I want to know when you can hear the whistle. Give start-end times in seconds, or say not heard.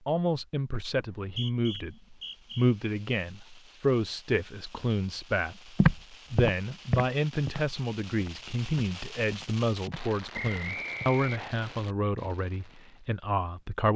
0.9-2.7, 10.3-11.4.